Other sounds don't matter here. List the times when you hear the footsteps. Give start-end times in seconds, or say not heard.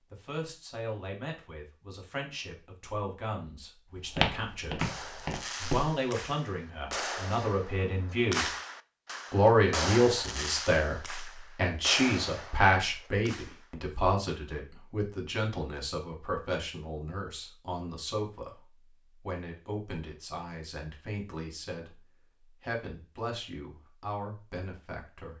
4.0-5.9.